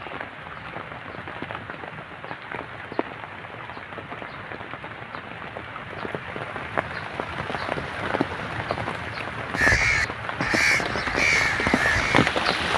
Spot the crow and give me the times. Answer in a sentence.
You can hear the crow from 9.6 to 12.7 s.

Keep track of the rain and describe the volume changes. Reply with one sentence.
The volume of the rain goes up.